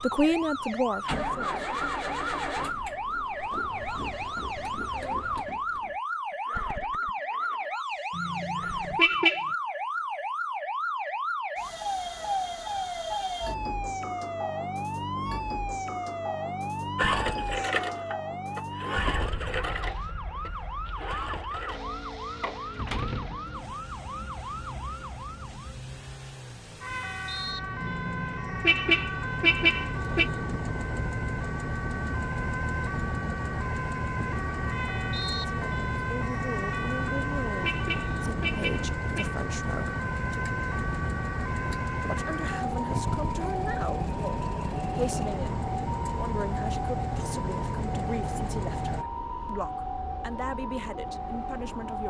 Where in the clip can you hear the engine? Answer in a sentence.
The engine can be heard from 0.0 to 9.3 s and from 16.9 to 49.0 s.